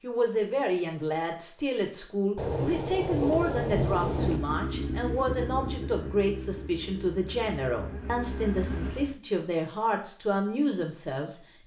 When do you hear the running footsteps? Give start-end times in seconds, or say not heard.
not heard.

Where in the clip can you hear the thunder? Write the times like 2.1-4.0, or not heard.
2.4-4.4.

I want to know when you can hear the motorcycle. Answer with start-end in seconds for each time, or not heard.
4.0-9.2.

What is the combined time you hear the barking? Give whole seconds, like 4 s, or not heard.
not heard.